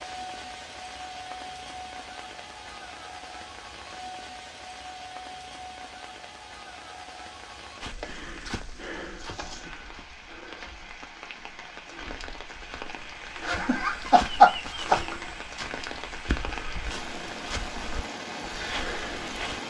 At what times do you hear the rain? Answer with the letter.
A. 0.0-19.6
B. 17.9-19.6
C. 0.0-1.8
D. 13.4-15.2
A.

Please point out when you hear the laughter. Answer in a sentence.
You can hear the laughter from 13.4 to 15.2 s.